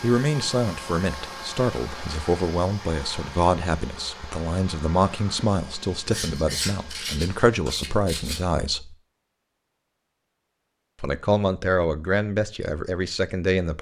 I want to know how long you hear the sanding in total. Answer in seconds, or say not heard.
2 s.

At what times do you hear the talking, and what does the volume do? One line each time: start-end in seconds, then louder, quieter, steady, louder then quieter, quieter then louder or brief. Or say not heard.
0.0-8.9 steady
11.0-13.7 brief.